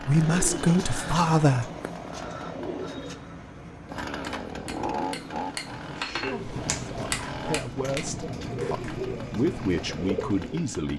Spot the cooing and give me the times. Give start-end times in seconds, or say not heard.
0.1-10.7.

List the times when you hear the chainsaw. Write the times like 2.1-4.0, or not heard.
0.0-10.9.